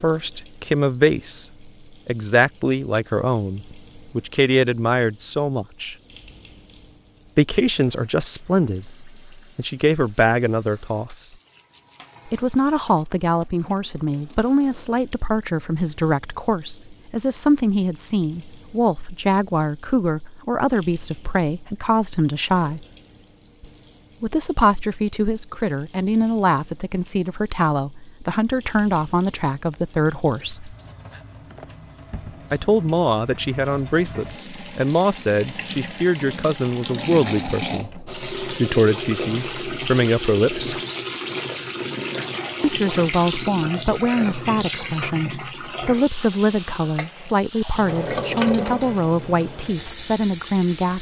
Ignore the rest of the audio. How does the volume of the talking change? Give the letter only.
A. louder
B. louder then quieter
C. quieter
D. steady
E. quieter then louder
D.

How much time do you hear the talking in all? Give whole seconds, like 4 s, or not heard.
44 s.